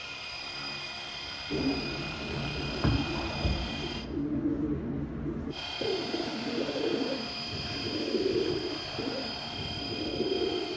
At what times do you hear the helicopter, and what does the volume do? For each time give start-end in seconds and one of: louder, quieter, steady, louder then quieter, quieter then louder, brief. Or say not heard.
0.0-4.1 steady
5.5-10.7 steady.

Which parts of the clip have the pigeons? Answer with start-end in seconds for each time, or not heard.
1.5-10.7.